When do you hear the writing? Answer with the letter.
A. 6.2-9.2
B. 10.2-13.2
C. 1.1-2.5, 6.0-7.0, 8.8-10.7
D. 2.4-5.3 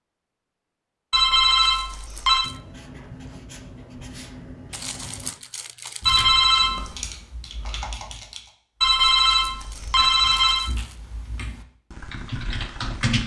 D.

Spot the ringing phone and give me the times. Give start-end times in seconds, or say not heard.
1.1-2.5, 6.0-7.0, 8.8-10.7.